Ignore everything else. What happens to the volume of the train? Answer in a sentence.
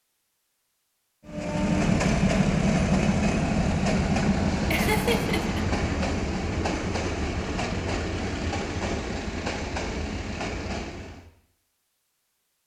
The volume of the train goes down.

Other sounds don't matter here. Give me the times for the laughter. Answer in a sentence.
The laughter can be heard from 4.7 to 5.6 s.